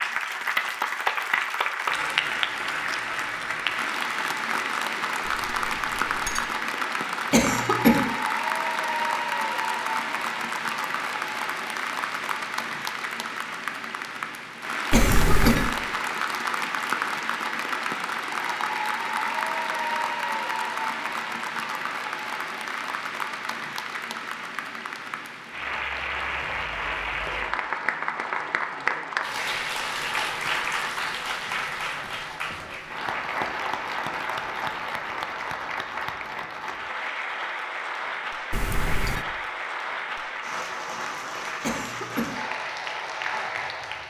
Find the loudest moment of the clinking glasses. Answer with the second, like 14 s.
15 s.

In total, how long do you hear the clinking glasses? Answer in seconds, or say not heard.
3 s.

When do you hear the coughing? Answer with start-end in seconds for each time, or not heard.
7.3-8.1, 14.9-15.7, 41.6-42.4.